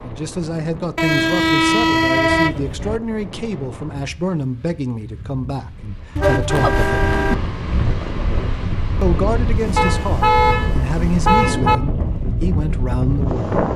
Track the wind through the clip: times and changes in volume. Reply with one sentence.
You can hear the wind from 0.0 to 13.7 s, getting louder.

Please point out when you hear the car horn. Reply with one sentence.
The car horn can be heard from 0.9 to 3.0 s, from 6.2 to 7.3 s and from 9.8 to 11.8 s.